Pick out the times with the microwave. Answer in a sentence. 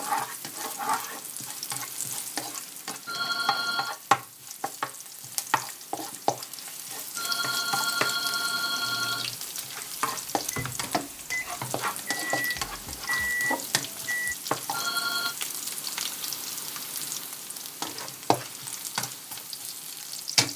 You can hear the microwave from 8.8 to 14.3 s.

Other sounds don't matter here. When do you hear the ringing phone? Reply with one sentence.
The ringing phone can be heard from 3.0 to 4.0 s, from 7.2 to 9.3 s and from 14.7 to 15.3 s.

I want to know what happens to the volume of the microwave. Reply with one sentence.
The volume of the microwave goes up.